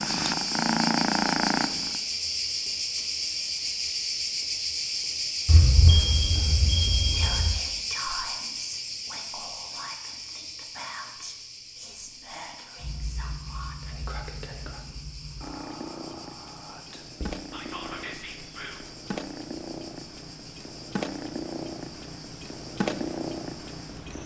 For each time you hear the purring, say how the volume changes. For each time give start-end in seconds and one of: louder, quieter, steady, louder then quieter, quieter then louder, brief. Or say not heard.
0.0-2.0 brief
12.8-24.2 louder.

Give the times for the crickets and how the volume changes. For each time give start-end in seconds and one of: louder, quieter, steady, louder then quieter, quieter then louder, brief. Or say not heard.
0.0-24.2 quieter.